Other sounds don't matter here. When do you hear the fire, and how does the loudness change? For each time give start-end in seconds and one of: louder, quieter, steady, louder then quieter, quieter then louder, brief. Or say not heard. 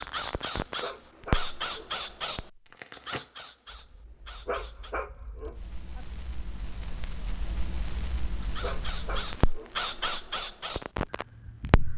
0.0-11.9 quieter then louder.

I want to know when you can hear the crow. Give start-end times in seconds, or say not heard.
0.0-5.0, 8.4-11.9.